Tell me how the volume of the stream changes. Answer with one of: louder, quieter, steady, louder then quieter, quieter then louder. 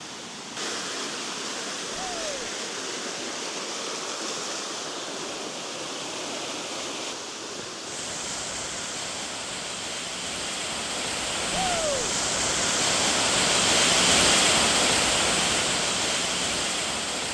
louder.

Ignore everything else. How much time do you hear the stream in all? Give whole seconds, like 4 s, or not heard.
17 s.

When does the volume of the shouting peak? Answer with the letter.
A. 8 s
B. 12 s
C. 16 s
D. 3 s
B.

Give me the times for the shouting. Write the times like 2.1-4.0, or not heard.
1.9-2.5, 11.5-12.1.